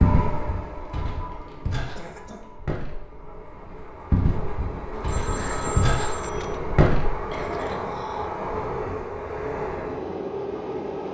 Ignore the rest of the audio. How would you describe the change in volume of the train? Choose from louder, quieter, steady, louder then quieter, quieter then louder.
louder.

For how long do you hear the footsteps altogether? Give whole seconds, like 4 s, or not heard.
7 s.